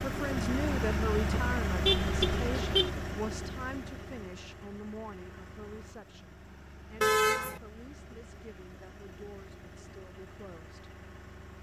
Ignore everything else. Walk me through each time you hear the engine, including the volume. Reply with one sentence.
You can hear the engine from 0.0 to 11.5 s, getting quieter.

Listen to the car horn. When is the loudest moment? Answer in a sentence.
The volume of the car horn peaks at 7 seconds.